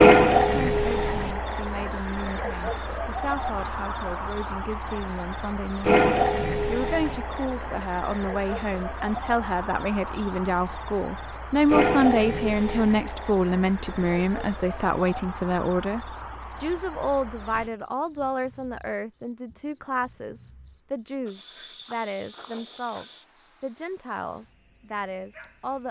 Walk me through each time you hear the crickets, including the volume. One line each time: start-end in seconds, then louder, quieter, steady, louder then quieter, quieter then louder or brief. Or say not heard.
0.0-25.8 quieter.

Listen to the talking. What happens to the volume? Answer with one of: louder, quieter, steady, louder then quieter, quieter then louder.
louder then quieter.